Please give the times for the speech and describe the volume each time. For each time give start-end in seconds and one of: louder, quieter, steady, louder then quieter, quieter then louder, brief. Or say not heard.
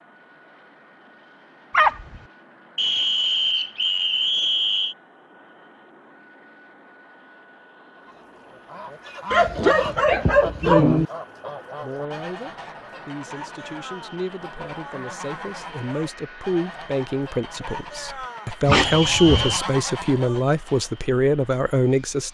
11.8-22.3 louder.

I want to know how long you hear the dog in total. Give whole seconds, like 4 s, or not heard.
3 s.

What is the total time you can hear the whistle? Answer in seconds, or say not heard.
3 s.